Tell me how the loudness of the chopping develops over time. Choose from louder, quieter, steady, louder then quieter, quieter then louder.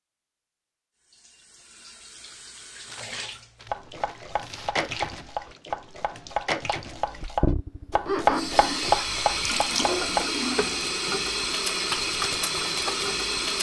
louder.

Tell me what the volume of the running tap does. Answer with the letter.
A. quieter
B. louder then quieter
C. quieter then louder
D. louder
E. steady
D.